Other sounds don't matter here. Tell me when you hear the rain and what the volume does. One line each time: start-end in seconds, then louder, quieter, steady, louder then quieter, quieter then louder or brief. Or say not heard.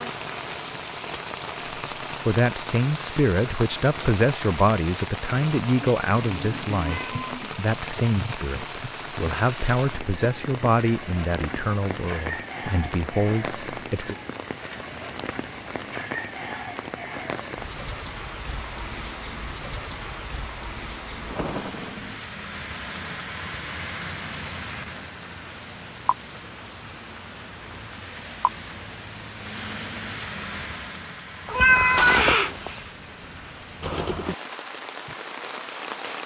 0.0-36.2 steady.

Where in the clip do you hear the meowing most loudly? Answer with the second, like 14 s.
32 s.